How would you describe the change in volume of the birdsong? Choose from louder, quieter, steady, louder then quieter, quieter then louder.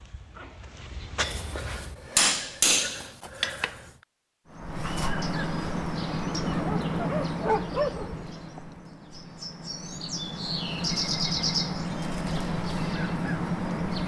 quieter then louder.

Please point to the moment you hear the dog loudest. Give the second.
8 s.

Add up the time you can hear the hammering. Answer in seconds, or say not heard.
3 s.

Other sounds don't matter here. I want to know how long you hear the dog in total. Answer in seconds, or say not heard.
4 s.